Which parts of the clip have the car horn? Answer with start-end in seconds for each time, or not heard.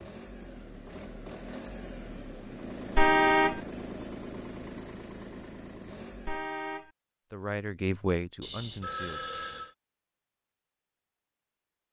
3.0-3.6, 6.2-6.9.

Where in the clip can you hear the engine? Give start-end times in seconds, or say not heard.
0.0-6.5.